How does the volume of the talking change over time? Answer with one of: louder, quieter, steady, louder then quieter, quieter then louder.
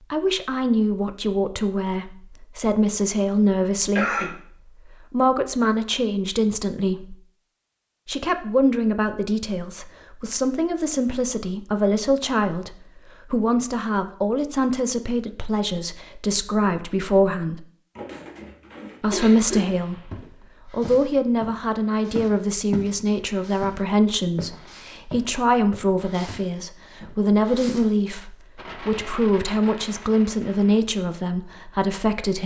steady.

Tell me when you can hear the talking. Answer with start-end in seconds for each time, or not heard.
0.1-7.2, 8.1-17.6, 19.0-32.4.